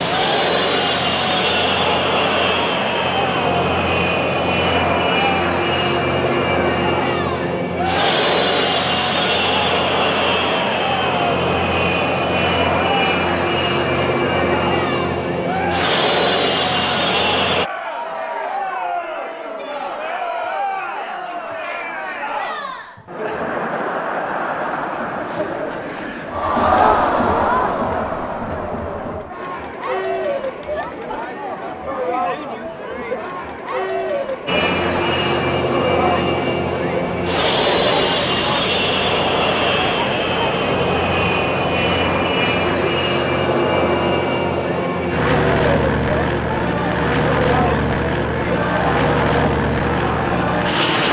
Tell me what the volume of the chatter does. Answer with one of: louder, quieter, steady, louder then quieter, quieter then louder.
steady.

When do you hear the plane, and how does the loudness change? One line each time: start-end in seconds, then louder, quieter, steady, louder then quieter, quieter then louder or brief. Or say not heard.
0.0-17.7 steady
34.5-51.0 steady.